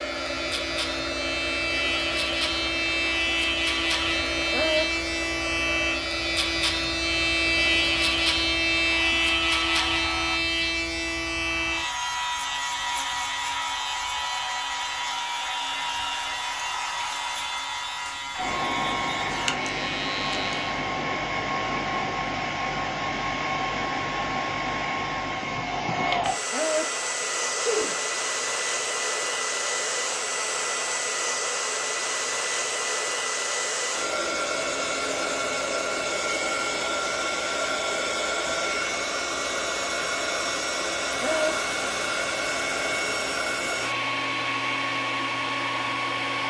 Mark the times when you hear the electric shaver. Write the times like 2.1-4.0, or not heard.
0.0-20.8.